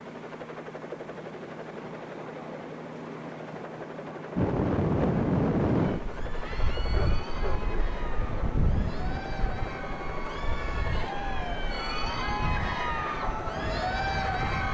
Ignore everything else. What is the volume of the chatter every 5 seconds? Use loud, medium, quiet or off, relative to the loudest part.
off, medium, loud.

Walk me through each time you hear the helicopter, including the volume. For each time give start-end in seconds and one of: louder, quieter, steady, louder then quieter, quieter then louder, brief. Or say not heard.
0.0-14.6 steady.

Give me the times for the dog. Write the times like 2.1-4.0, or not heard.
6.9-7.9.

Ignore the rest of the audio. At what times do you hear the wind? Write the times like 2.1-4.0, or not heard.
4.3-14.6.